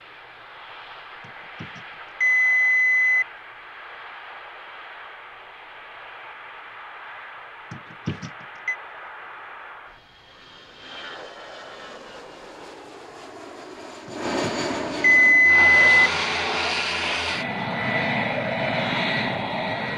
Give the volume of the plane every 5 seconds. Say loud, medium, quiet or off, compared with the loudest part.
quiet, quiet, medium, loud.